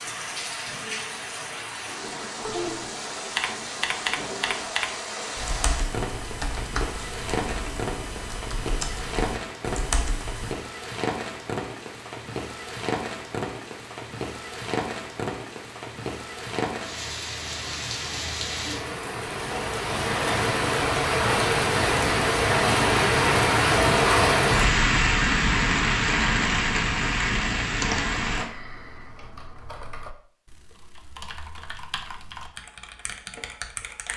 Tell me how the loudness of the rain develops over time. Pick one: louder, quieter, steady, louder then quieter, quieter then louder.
louder.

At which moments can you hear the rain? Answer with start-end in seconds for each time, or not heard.
0.0-28.4.